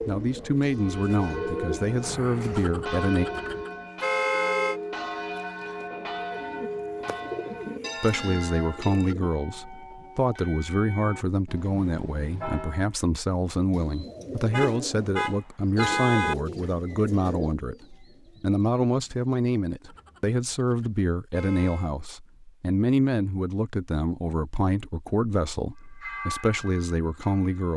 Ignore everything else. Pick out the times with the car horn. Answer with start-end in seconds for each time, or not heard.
2.5-4.8, 14.5-16.4, 19.8-21.9.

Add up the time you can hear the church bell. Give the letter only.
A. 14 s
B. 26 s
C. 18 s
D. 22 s
A.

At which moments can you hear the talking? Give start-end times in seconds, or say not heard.
0.1-3.2, 8.0-27.7.